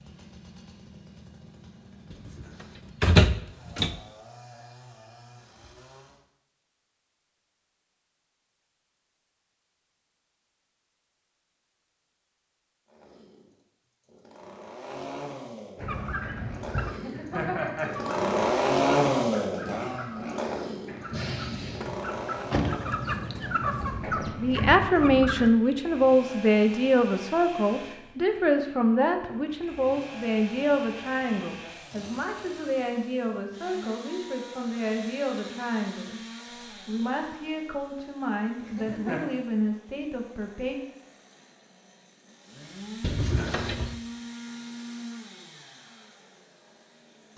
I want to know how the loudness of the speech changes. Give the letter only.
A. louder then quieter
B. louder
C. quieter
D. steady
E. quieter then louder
C.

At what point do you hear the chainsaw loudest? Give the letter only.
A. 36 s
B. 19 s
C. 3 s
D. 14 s
B.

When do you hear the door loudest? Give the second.
3 s.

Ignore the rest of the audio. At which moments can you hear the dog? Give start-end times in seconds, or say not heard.
not heard.